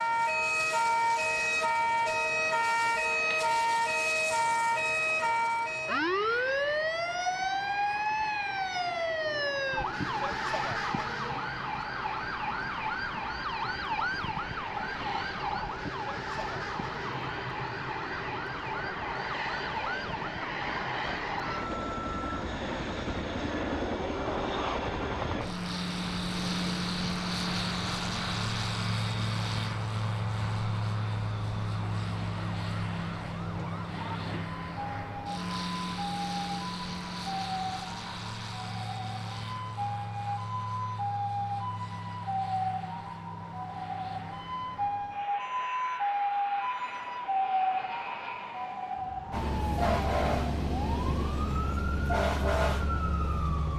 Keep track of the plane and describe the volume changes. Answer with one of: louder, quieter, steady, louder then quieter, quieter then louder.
louder then quieter.